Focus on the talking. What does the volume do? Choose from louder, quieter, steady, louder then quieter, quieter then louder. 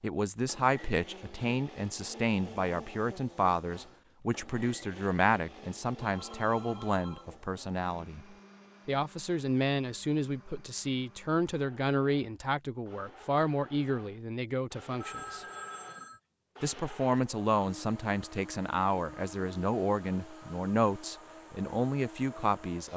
steady.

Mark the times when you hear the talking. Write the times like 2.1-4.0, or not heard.
0.0-8.2, 8.8-15.4, 16.6-22.9.